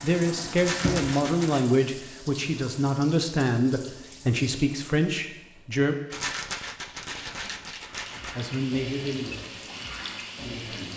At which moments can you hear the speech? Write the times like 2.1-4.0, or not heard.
0.0-6.0, 8.3-10.9.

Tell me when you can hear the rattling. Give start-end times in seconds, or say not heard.
0.6-1.7, 6.1-8.3.